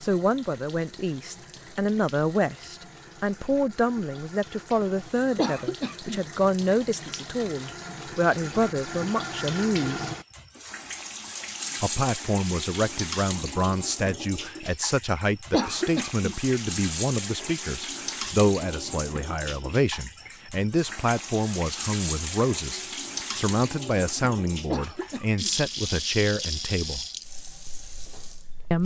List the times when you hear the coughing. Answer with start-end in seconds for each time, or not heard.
5.3-6.2, 15.5-16.4, 24.7-25.5.